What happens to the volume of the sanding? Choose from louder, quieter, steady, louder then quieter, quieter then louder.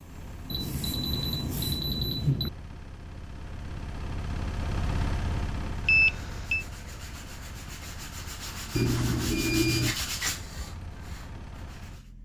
louder then quieter.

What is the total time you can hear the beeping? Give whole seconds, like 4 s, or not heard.
4 s.